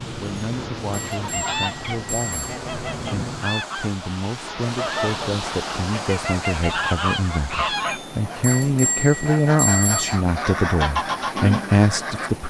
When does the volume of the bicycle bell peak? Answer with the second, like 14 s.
10 s.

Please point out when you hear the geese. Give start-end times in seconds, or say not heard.
0.9-12.3.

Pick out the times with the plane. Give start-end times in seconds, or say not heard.
0.0-3.5.